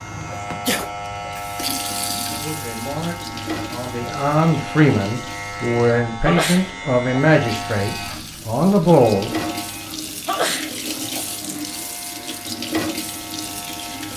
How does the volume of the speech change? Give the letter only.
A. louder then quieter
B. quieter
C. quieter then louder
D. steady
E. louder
E.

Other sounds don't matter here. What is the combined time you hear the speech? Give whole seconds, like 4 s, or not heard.
7 s.